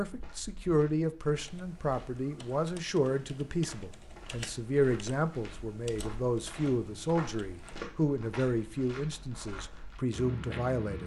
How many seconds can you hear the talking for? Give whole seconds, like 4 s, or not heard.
11 s.